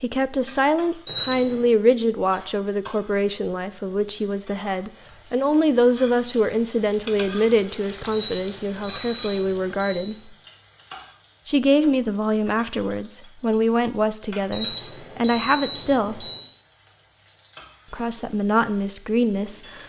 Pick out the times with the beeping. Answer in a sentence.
The beeping can be heard from 1.1 to 1.6 s, from 8.1 to 10.2 s and from 14.5 to 16.4 s.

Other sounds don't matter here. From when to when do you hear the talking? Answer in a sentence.
You can hear the talking from 0.0 to 10.3 s, from 11.4 to 16.3 s and from 17.9 to 19.8 s.